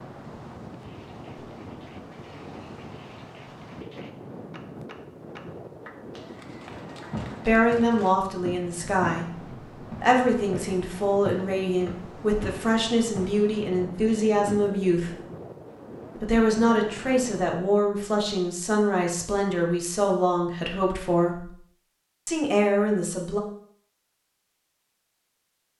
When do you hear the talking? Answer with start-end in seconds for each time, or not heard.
7.5-15.2, 16.2-21.5, 22.2-23.4.